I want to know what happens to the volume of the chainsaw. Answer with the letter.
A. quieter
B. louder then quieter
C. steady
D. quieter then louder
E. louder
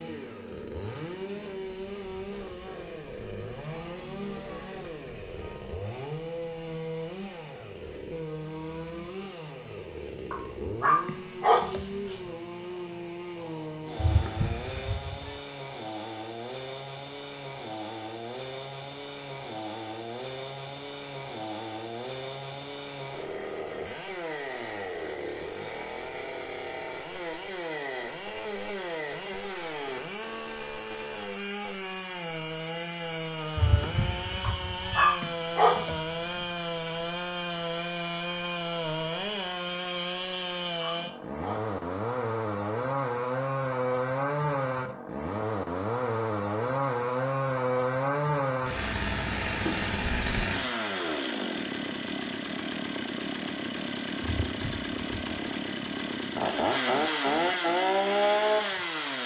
E.